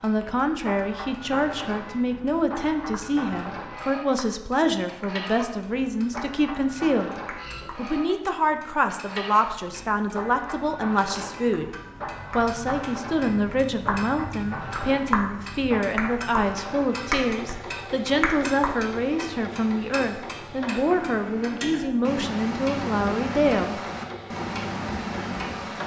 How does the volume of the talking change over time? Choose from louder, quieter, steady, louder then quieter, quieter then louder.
steady.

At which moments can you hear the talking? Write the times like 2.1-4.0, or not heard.
0.0-7.2, 7.8-11.7, 12.3-23.8.